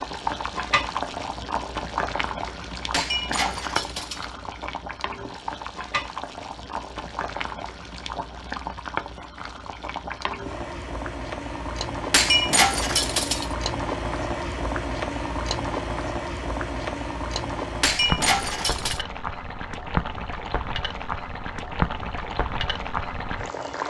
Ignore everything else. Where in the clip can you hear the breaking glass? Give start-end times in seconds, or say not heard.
2.9-4.3, 12.1-13.5, 17.8-19.1.